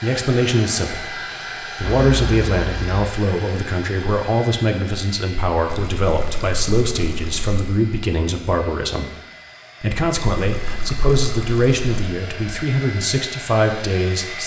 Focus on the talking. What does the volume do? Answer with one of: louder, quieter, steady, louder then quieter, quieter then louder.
steady.